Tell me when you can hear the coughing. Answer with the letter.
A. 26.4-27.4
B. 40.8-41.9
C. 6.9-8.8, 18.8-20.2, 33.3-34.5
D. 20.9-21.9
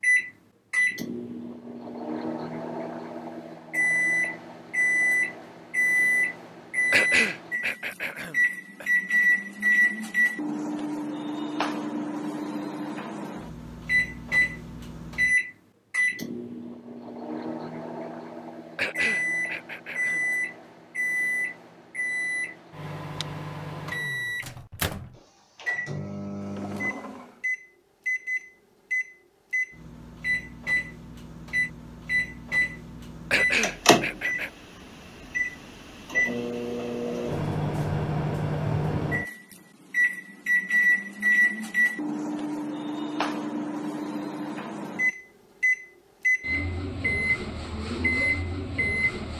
C.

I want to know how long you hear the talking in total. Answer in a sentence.
You can't hear the talking here.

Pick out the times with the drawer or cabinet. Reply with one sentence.
You can hear the drawer or cabinet from 26.4 to 27.4 s.